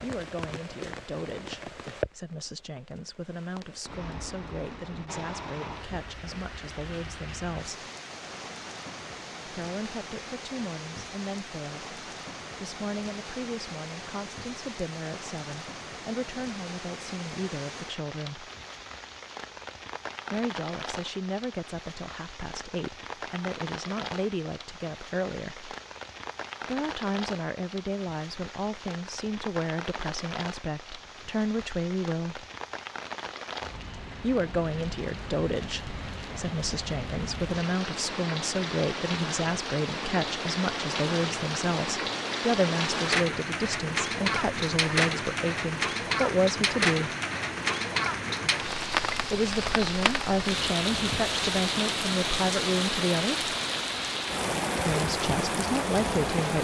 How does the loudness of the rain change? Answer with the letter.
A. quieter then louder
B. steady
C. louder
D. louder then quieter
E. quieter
C.